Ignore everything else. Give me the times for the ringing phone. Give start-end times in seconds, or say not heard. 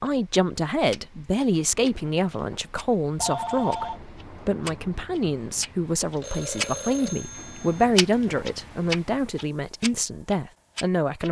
3.2-4.0, 6.2-7.8.